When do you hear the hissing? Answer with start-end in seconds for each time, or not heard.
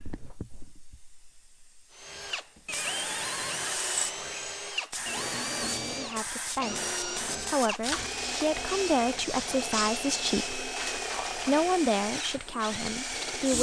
0.0-13.5.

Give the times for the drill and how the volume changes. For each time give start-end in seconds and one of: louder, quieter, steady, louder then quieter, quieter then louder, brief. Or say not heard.
1.9-13.5 steady.